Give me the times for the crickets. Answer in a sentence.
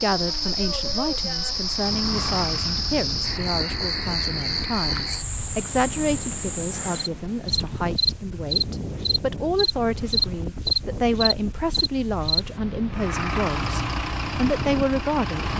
The crickets can be heard from 0.0 to 12.4 s.